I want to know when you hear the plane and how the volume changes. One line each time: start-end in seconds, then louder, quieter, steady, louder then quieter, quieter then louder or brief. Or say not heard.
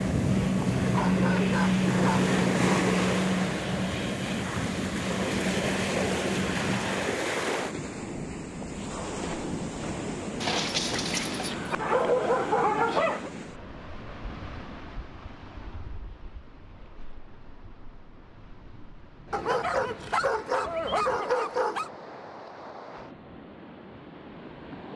0.0-7.3 quieter.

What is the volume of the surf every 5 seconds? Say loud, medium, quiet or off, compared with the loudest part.
loud, loud, medium, quiet, quiet.